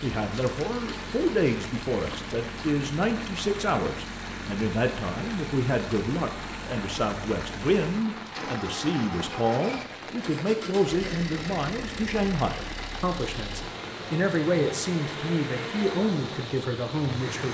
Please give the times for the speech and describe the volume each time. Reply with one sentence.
The speech can be heard from 0.0 to 17.5 s, at a steady volume.